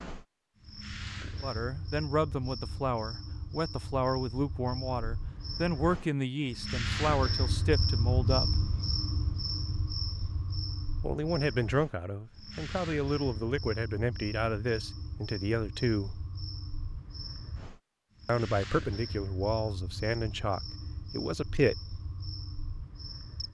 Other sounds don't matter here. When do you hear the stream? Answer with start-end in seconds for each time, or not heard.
not heard.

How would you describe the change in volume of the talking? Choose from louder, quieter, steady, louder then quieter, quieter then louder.
steady.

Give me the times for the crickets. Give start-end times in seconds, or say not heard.
0.0-23.4.